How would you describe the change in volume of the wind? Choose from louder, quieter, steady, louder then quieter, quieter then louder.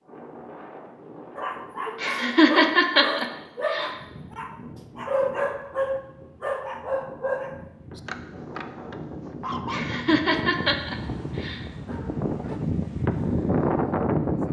louder.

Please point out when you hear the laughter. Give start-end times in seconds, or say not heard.
2.0-4.0, 9.7-11.7.